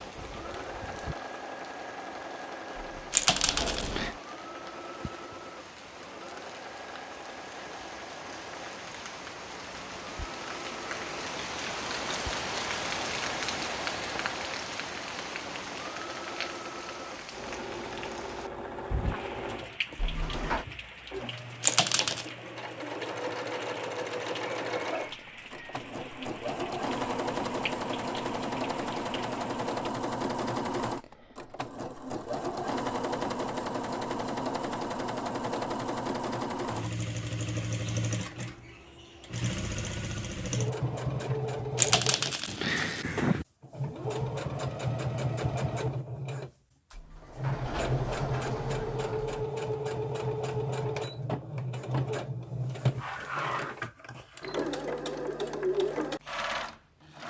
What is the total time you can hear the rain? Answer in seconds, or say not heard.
30 s.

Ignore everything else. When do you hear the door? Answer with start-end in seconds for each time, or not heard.
2.9-4.2, 19.9-20.6, 46.9-49.5.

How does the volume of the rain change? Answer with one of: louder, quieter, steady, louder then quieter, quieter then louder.
louder then quieter.